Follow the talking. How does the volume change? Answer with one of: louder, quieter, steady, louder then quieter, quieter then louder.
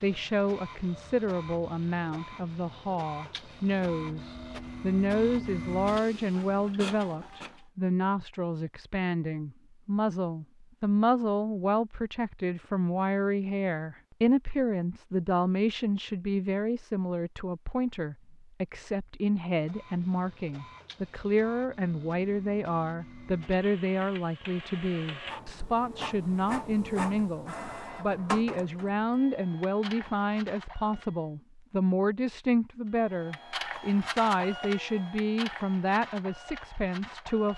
steady.